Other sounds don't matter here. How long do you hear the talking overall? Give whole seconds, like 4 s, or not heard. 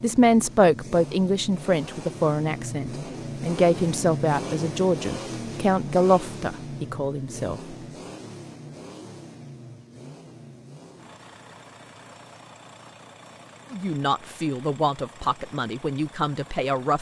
11 s.